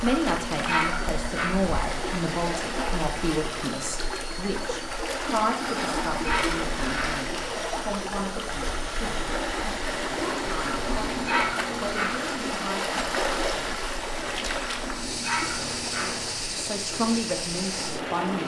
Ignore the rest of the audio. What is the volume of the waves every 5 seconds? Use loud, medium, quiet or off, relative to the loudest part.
loud, loud, loud, medium.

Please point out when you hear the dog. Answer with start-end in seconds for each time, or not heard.
0.0-1.6, 5.8-7.2, 10.6-12.2, 14.6-16.2.